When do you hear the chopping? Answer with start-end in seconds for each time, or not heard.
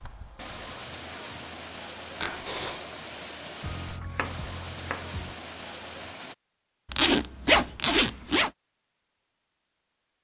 3.6-5.3.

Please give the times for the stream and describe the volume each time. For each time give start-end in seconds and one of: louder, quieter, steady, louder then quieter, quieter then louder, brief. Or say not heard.
0.0-6.3 steady.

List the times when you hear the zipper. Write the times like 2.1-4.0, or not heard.
2.2-2.9, 6.8-8.5.